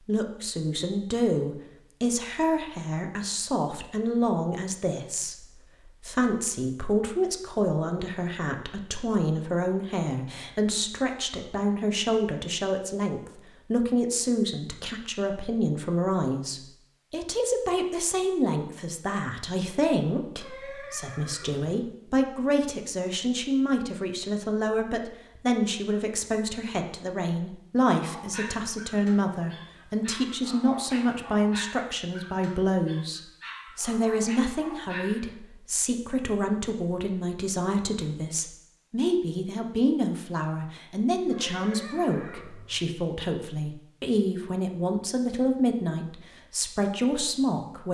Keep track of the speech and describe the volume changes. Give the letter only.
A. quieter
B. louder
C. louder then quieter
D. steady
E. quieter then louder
D.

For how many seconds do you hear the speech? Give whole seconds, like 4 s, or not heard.
48 s.